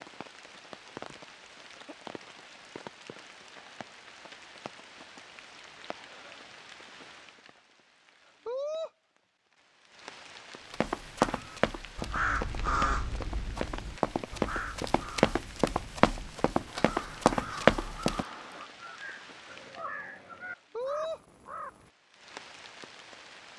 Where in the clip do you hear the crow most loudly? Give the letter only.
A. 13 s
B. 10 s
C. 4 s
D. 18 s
A.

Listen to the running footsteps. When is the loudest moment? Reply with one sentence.
The loudest moment of the running footsteps is at 18 seconds.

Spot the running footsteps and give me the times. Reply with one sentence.
You can hear the running footsteps from 10.7 to 18.2 s.